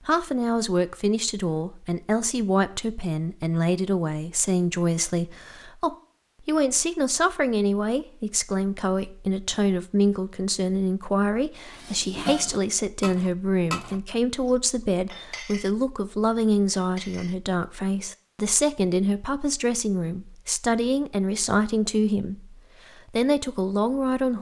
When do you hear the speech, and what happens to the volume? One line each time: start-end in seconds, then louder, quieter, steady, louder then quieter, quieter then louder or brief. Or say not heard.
0.1-24.3 steady.